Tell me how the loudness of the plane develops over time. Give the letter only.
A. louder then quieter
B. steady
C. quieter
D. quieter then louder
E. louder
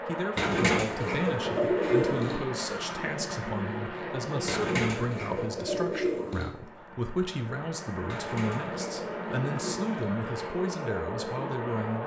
D.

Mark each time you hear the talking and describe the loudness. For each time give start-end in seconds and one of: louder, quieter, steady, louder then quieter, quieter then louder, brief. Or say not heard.
0.1-12.0 steady.